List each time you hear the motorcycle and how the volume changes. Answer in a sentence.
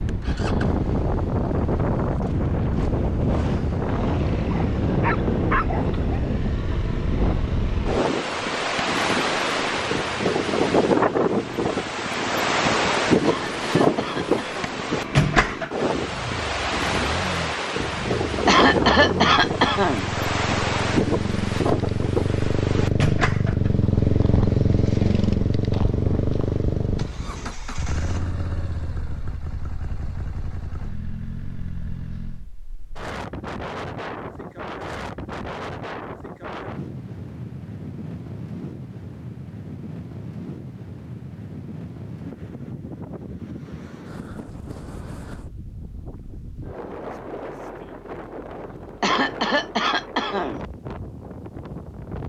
You can hear the motorcycle from 0.0 to 32.5 s, getting louder then quieter.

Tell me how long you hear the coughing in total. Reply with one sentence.
The coughing can be heard for 5 seconds in total.